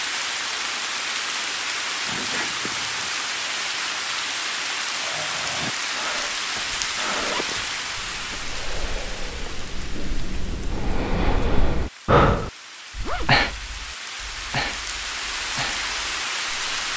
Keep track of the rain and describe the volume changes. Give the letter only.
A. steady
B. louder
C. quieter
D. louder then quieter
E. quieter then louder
E.